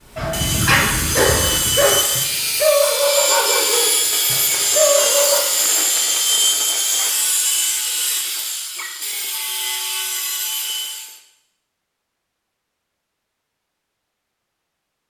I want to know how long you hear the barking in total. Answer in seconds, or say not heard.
5 s.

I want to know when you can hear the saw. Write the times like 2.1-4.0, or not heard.
0.0-11.2.